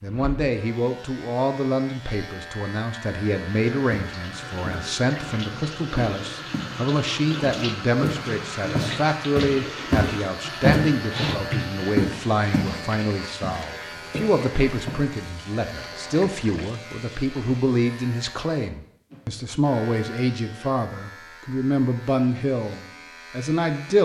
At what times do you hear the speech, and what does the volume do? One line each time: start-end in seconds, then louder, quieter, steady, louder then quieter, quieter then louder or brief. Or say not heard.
0.0-24.0 steady.